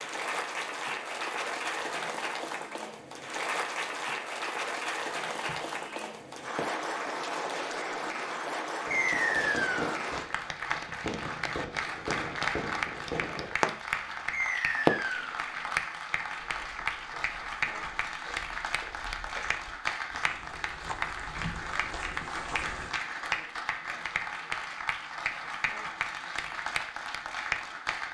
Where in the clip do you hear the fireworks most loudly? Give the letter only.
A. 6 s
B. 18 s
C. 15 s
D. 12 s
C.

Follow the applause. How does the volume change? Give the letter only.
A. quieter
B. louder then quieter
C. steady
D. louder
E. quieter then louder
C.